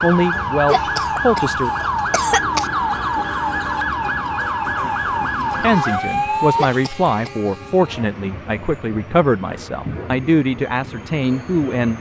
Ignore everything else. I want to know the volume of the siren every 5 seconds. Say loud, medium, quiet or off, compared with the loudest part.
loud, loud, off.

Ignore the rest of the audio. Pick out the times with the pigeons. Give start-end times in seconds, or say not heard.
not heard.